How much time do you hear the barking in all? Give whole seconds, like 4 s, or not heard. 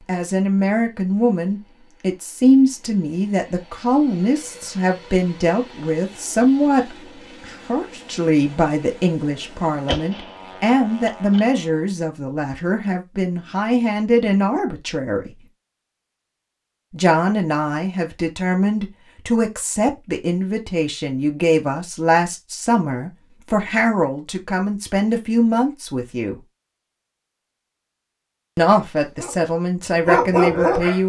2 s.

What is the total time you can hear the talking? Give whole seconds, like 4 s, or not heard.
27 s.